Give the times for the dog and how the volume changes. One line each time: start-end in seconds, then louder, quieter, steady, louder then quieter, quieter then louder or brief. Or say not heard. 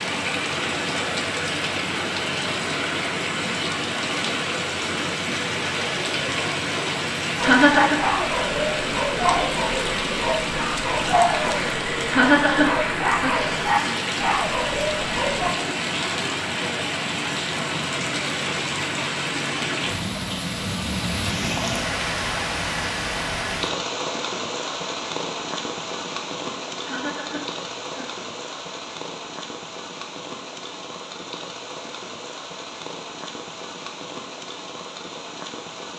7.4-15.5 steady.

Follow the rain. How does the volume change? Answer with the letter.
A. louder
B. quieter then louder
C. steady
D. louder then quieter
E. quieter
E.